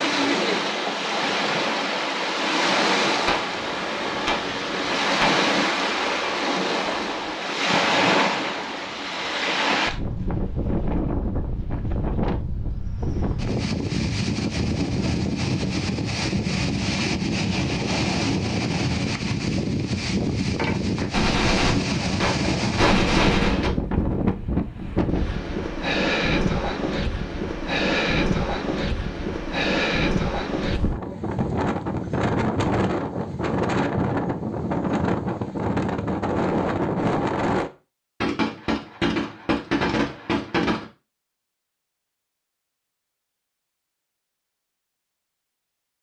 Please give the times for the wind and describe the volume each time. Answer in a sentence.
You can hear the wind from 0.0 to 37.7 s, at a steady volume.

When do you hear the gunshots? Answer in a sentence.
You can hear the gunshots from 3.2 to 7.3 s, from 20.9 to 23.7 s and from 38.2 to 40.9 s.